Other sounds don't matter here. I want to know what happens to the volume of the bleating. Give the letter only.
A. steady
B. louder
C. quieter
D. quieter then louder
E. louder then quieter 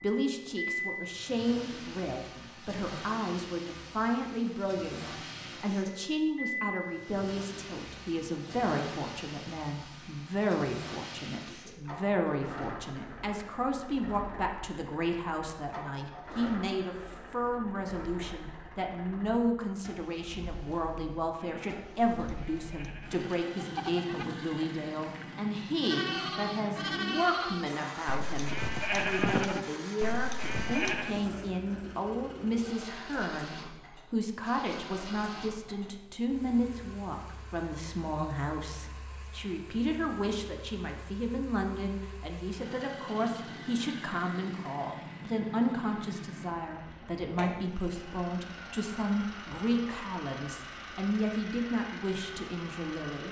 B.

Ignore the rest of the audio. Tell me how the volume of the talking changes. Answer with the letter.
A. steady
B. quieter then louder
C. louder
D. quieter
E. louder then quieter
A.